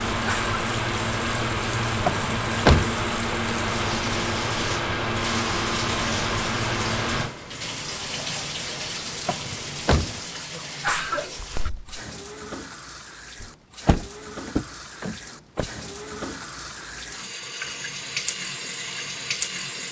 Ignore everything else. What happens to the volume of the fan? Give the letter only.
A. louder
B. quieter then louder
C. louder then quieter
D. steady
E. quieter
E.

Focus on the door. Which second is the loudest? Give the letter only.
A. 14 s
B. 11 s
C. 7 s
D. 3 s
D.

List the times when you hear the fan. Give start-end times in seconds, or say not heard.
0.0-10.3.